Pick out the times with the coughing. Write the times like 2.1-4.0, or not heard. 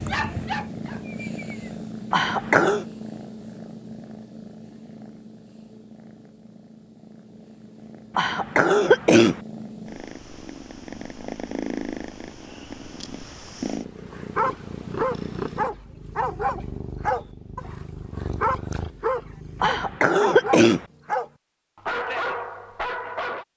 2.1-2.9, 8.2-9.4, 19.6-20.9.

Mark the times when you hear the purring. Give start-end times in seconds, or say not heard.
0.0-20.0.